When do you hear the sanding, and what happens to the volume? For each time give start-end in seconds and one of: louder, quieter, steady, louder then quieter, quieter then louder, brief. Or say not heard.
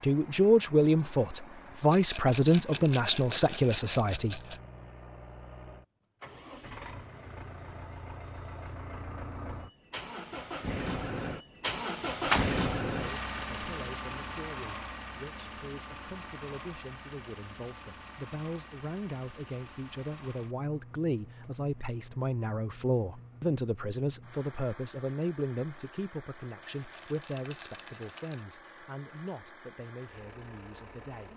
not heard.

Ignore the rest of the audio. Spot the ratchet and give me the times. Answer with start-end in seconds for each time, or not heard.
not heard.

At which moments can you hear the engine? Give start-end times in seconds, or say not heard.
0.0-31.3.